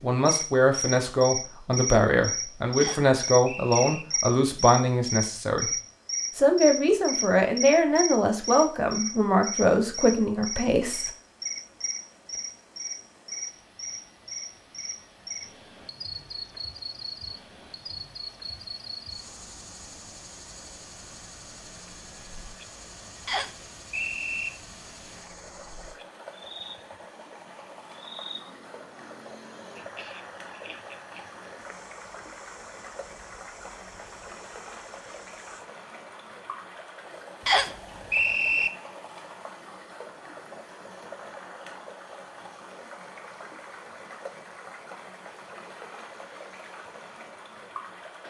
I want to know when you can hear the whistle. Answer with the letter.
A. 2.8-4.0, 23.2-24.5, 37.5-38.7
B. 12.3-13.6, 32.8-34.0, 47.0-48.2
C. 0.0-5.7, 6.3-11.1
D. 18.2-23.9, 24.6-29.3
A.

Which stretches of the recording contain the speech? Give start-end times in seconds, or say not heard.
0.0-5.7, 6.3-11.1.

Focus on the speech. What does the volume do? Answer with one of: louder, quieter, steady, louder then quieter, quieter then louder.
steady.